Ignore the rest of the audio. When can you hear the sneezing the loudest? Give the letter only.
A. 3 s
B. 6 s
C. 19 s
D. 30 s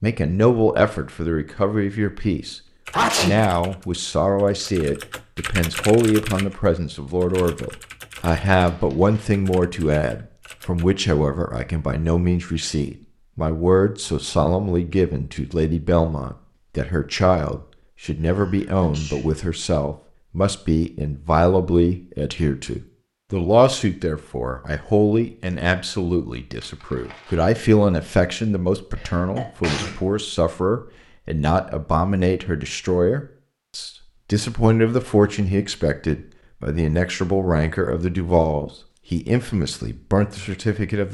A.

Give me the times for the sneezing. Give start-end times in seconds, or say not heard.
2.9-3.4, 18.3-19.2, 28.9-30.0.